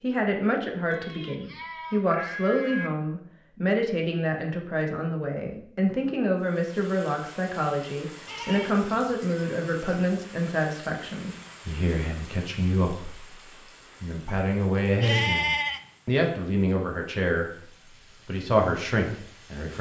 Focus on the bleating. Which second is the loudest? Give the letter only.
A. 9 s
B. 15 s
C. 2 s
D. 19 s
B.